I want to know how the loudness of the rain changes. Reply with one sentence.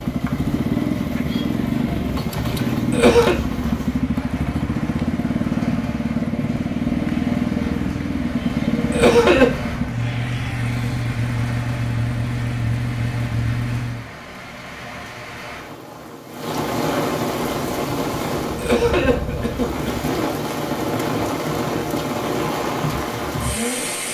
The volume of the rain goes up.